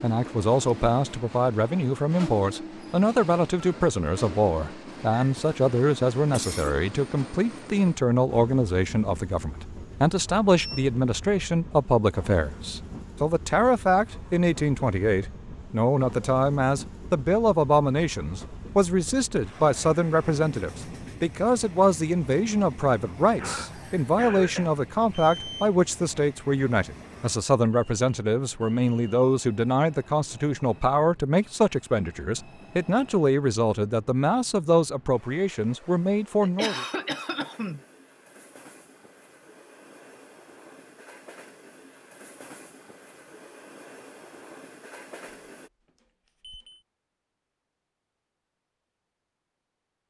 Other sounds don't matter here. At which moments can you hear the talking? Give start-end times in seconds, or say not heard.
0.0-36.9.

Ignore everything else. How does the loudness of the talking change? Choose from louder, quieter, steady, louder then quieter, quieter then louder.
steady.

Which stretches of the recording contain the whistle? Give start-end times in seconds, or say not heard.
not heard.